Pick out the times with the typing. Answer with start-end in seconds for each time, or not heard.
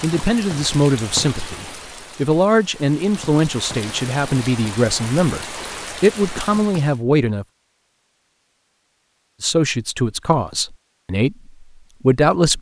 not heard.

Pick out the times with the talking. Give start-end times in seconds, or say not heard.
0.0-7.5, 9.4-12.5.